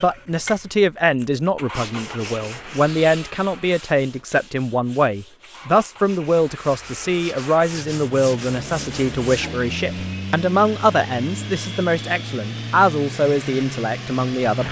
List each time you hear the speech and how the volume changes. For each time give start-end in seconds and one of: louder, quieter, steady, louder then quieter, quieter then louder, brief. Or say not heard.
0.0-14.6 steady.